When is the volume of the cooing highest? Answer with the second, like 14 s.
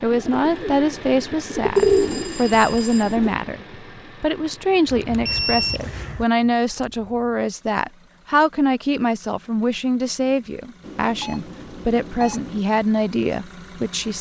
2 s.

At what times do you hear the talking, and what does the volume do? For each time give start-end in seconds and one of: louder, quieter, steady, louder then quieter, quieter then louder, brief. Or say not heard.
0.0-14.1 steady.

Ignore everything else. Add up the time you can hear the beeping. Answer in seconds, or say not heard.
5 s.